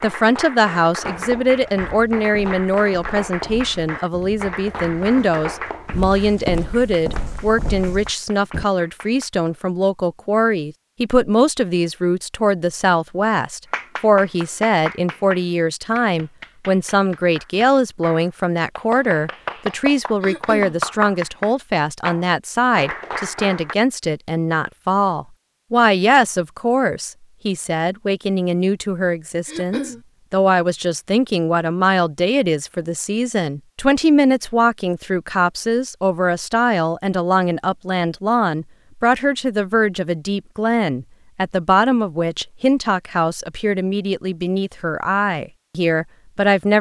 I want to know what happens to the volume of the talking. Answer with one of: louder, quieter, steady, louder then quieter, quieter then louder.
steady.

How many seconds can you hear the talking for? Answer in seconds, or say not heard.
47 s.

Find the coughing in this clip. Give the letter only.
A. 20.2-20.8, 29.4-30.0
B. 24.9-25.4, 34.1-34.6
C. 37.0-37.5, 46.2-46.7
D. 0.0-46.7
A.